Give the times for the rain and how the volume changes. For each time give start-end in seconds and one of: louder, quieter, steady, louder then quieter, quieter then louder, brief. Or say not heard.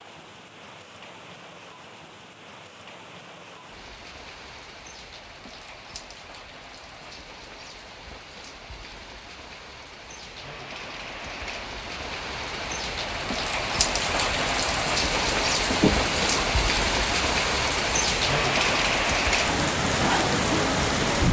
0.0-21.2 louder.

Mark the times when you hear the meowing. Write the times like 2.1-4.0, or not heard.
15.7-16.6.